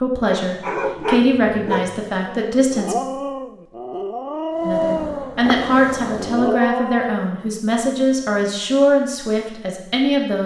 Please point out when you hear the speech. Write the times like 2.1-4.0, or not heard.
0.0-3.0, 4.7-10.4.